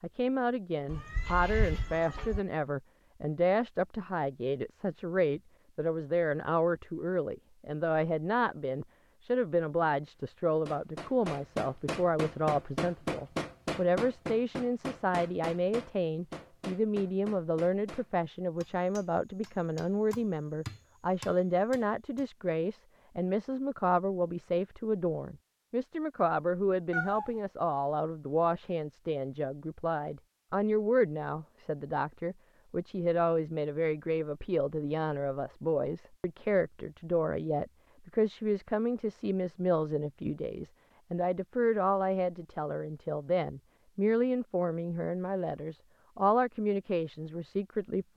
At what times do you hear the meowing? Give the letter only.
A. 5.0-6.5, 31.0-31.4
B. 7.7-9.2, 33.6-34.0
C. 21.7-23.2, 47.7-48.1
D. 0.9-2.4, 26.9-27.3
D.